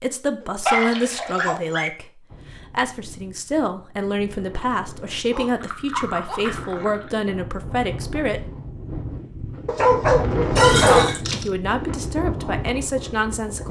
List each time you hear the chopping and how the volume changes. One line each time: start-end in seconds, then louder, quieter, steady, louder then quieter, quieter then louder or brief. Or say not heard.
not heard.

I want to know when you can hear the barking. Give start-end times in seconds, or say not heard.
0.4-1.9, 5.3-6.8, 9.7-11.5.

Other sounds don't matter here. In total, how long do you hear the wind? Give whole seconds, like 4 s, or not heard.
11 s.